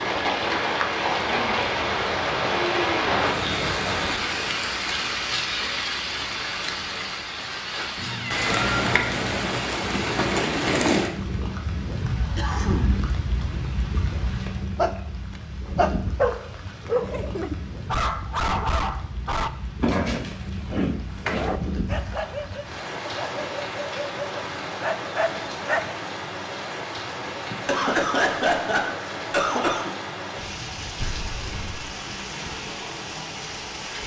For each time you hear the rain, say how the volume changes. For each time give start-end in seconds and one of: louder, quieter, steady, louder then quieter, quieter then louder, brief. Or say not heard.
0.0-34.0 quieter.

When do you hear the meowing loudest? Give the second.
9 s.